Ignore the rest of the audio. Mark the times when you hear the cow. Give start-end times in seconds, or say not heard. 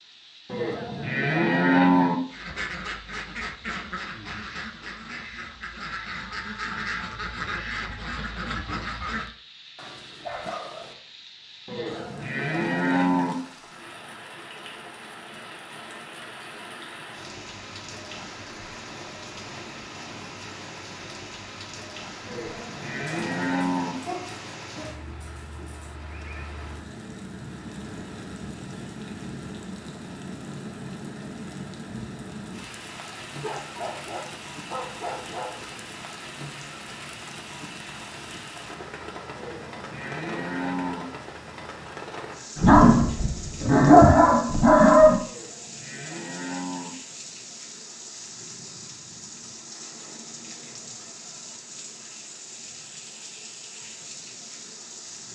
0.5-2.1, 11.7-13.3, 22.2-23.9, 39.4-41.0, 45.2-46.9.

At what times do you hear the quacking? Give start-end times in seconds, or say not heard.
2.3-9.3.